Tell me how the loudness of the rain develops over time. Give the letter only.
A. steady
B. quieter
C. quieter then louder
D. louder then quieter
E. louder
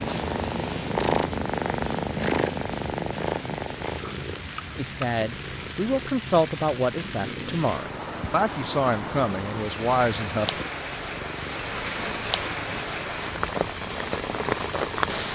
E.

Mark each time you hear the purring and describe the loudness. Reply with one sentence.
The purring can be heard from 0.0 to 15.2 s, getting quieter.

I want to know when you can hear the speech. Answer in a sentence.
The speech can be heard from 4.8 to 10.5 s.